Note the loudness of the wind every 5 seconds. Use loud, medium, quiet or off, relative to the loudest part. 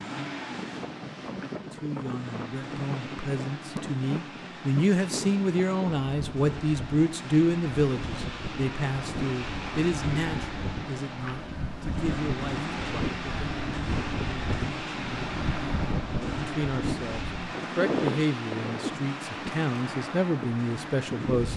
medium, medium, loud, loud, loud.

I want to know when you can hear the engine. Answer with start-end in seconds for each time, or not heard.
0.0-21.5.